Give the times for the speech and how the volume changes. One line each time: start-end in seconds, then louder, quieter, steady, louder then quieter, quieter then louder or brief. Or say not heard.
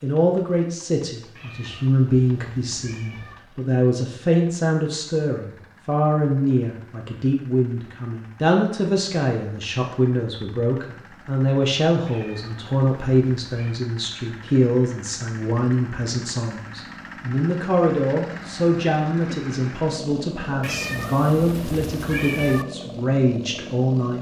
0.0-24.1 steady.